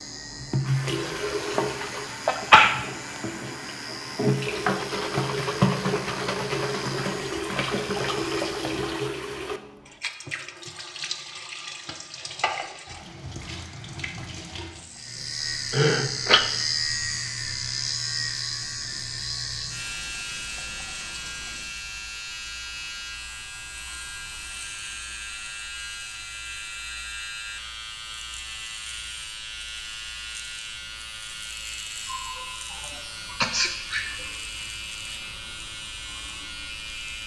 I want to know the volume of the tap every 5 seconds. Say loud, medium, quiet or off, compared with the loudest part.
loud, loud, medium, quiet, quiet, off, off, off.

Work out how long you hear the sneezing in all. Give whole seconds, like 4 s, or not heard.
4 s.